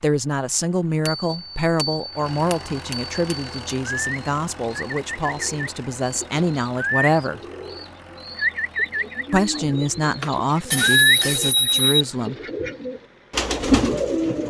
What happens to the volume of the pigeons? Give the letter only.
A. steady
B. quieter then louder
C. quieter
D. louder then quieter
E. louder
E.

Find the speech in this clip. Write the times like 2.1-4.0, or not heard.
0.0-7.4, 9.3-12.3.